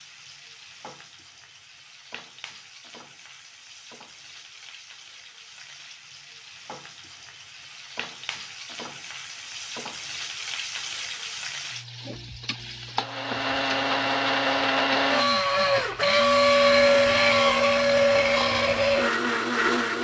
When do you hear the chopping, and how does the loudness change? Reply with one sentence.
The chopping can't be heard in this clip.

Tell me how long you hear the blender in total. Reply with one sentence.
You can hear the blender for 7 seconds altogether.